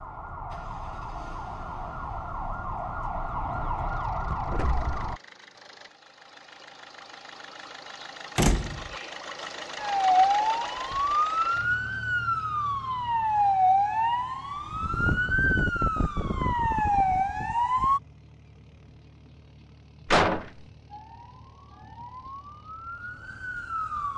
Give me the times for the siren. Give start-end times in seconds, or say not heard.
0.0-5.2, 9.8-18.0, 20.9-24.1.